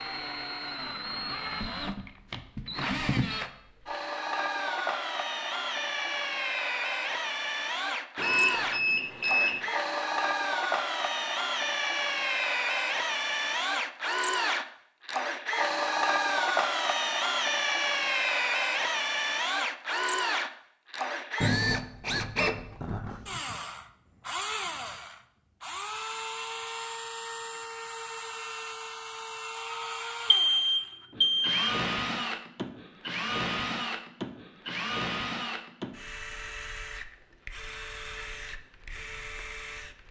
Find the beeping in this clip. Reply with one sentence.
The beeping can be heard from 8.2 to 9.6 s and from 30.3 to 31.6 s.